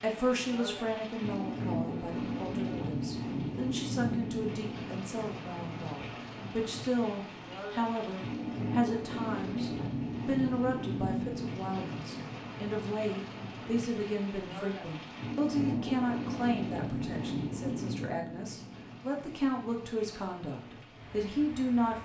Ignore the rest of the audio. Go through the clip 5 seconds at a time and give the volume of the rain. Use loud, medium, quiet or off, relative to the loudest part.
loud, loud, loud, loud, quiet.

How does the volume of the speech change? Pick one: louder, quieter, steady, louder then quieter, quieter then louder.
steady.